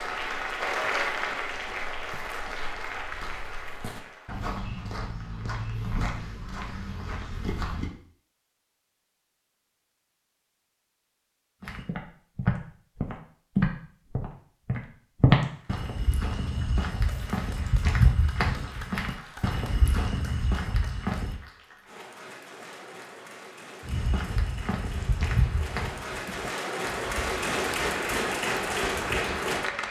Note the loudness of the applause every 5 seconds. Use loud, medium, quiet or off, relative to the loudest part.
loud, off, off, quiet, quiet, loud.